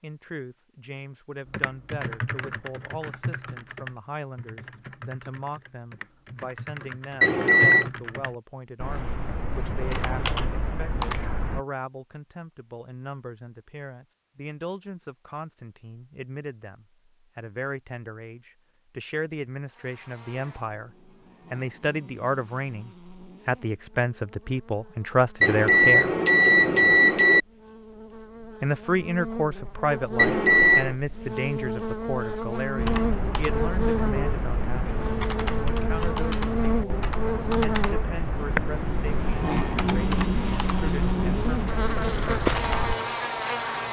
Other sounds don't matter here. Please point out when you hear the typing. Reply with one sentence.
You can hear the typing from 1.5 to 11.6 s and from 32.8 to 43.0 s.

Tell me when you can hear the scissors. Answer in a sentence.
You can't hear the scissors here.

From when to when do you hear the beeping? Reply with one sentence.
The beeping can be heard from 7.2 to 7.9 s, from 25.4 to 27.4 s and from 30.1 to 30.9 s.